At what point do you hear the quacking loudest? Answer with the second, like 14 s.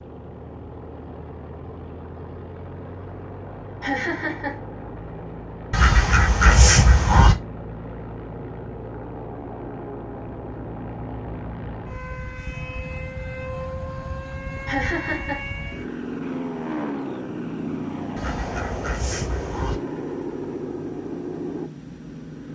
7 s.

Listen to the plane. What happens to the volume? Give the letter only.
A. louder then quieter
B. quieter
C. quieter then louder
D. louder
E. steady
D.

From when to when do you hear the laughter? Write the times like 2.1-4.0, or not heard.
3.8-4.6, 14.7-15.4.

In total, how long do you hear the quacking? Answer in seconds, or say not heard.
3 s.